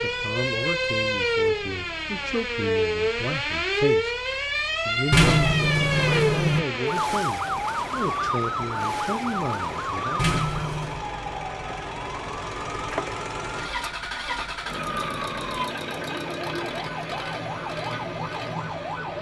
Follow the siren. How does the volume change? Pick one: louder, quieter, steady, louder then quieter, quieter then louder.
quieter.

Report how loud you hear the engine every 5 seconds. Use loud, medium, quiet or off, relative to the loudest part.
quiet, medium, loud, loud.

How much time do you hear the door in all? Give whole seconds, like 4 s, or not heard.
2 s.